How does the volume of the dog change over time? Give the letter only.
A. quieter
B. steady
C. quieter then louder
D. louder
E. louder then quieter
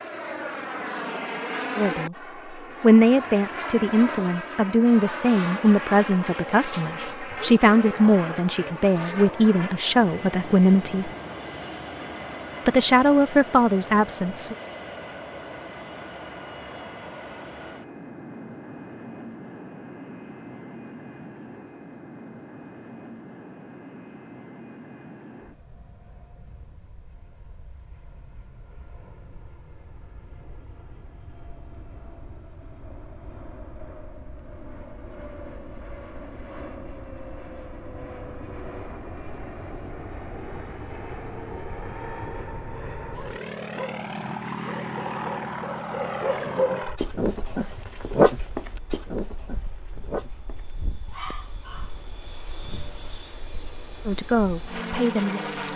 E.